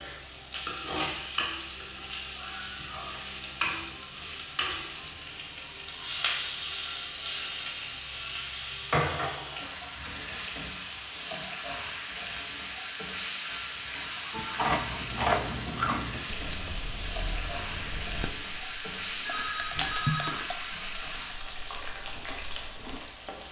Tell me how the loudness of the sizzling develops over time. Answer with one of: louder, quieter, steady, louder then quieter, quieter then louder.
steady.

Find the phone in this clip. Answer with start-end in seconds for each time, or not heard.
19.2-20.4.